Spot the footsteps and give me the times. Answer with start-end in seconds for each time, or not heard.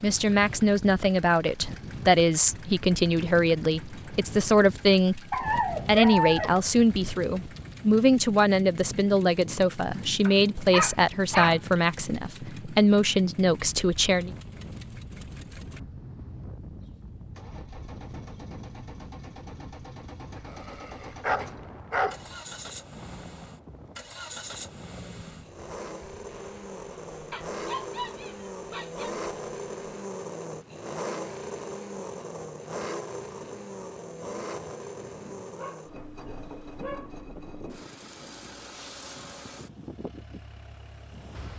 not heard.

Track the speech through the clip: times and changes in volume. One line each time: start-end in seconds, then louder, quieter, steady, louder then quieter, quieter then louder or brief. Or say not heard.
0.0-14.3 steady.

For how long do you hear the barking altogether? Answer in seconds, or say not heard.
8 s.